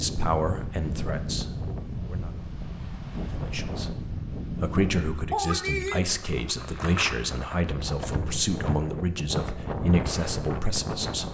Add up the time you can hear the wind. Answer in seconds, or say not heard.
11 s.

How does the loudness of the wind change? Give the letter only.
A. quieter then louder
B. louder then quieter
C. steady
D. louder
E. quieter
C.